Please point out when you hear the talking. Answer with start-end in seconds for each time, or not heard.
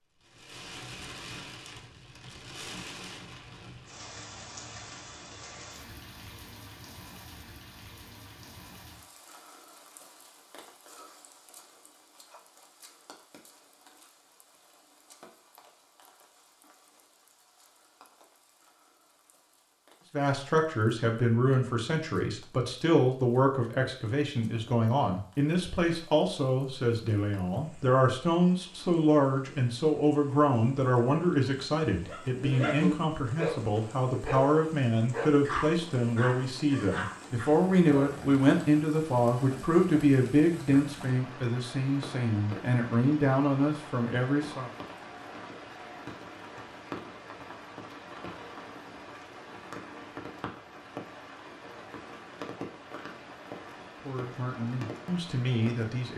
20.1-44.7, 54.0-56.1.